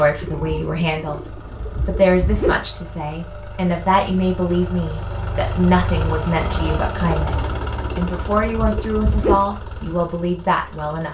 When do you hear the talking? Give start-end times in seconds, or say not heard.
0.0-11.0.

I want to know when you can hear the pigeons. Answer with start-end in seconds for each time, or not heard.
0.2-2.6, 7.0-9.4.